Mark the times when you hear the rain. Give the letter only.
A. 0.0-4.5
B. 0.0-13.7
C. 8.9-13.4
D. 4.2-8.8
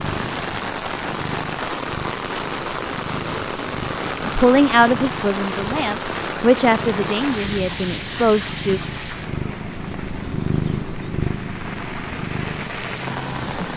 B.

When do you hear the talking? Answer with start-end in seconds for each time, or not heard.
4.2-8.8.